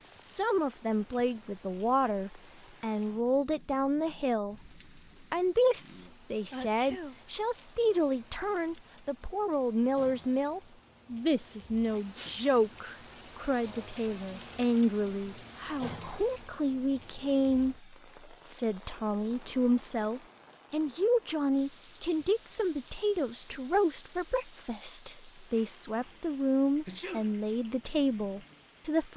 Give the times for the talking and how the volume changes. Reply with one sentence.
The talking can be heard from 0.0 to 4.6 s, at a steady volume; and from 5.3 to 29.1 s, at a steady volume.